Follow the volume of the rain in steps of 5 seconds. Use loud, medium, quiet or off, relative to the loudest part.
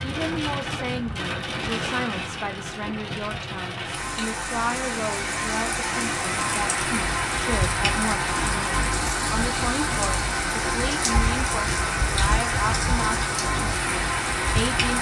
medium, loud, loud.